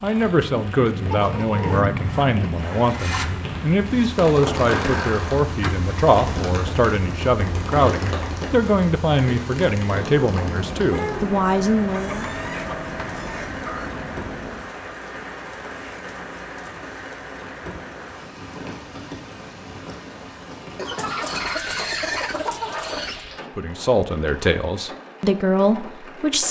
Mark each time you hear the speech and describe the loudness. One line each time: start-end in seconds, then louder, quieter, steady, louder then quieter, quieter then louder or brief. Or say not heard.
0.0-12.3 steady
23.6-26.4 brief.